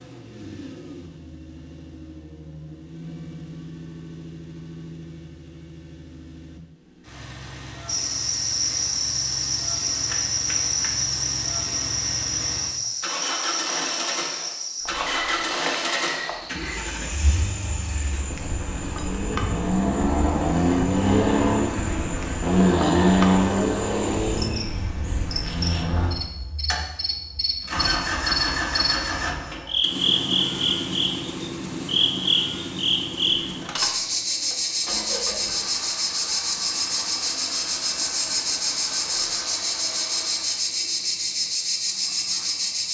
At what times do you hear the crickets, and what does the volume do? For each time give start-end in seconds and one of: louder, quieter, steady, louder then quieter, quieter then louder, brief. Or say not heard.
7.8-42.8 quieter then louder.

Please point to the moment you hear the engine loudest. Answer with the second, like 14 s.
23 s.